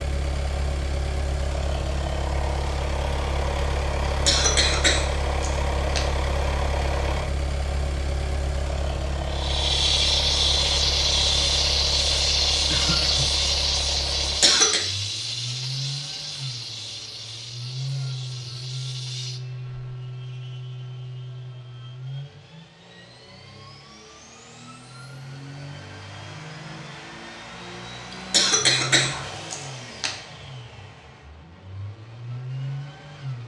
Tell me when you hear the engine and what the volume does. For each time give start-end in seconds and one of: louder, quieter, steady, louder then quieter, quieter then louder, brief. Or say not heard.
0.0-33.4 quieter.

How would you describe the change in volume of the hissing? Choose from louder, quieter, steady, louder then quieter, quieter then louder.
quieter.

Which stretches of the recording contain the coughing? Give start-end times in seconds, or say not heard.
4.2-6.0, 14.2-14.8, 28.1-30.1.